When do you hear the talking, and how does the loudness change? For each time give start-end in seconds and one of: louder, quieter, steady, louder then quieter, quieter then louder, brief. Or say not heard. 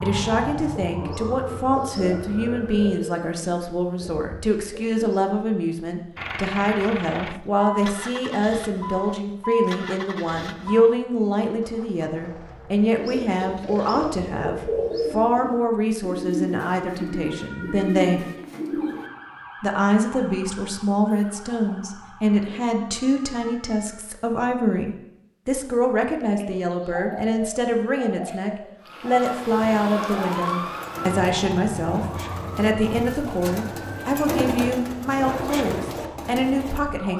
0.0-18.2 steady
19.6-37.1 steady.